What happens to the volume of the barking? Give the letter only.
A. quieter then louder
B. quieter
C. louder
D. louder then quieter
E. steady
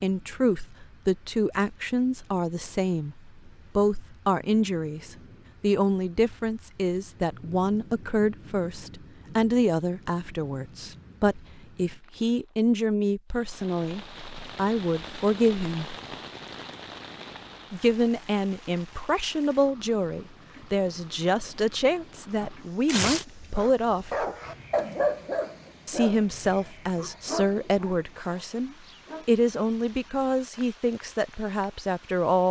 B.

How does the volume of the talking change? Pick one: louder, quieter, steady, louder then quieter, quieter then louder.
steady.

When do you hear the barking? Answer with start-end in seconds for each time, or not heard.
22.4-29.3.